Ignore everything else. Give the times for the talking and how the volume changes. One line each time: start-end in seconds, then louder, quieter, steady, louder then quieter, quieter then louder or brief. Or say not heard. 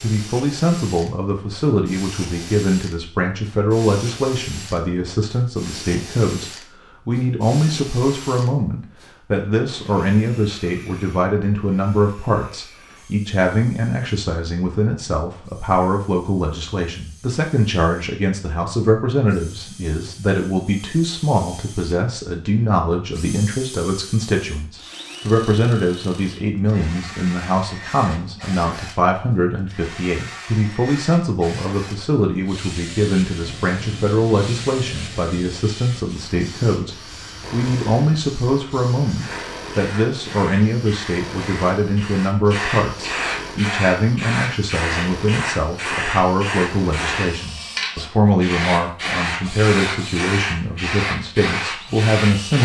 0.0-52.6 steady.